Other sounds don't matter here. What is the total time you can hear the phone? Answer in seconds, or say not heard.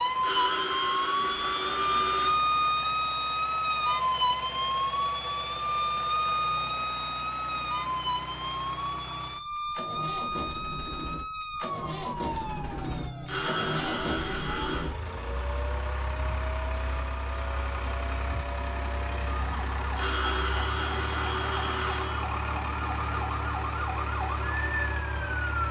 6 s.